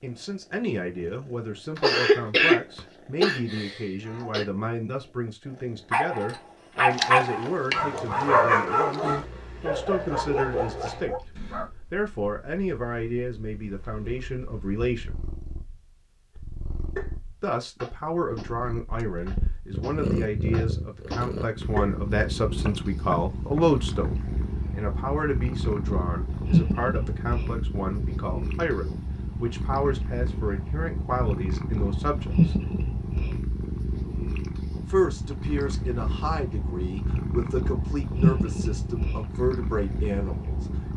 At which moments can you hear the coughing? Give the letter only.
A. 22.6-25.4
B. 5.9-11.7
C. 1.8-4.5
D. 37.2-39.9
C.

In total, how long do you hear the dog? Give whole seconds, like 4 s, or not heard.
6 s.